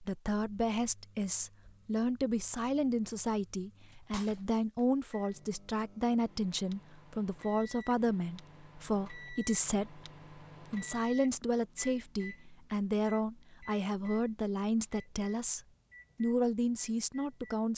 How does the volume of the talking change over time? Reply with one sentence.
The loudness of the talking stays about the same.